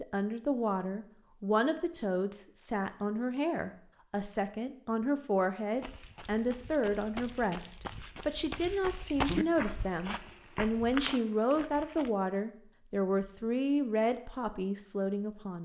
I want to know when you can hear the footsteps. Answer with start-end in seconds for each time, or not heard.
5.8-12.1.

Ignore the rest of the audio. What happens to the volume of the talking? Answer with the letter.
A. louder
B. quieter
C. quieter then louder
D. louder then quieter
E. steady
E.